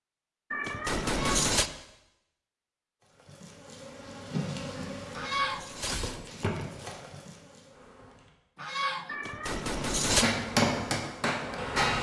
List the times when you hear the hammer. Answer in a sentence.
The hammer can be heard from 10.2 to 11.9 s.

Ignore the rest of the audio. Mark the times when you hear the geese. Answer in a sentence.
You can hear the geese from 1.0 to 1.4 s, from 5.2 to 5.7 s and from 8.6 to 9.2 s.